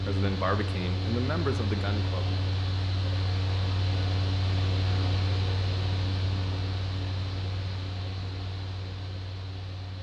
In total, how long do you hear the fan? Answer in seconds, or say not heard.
10 s.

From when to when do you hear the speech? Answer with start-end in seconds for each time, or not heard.
0.0-2.3.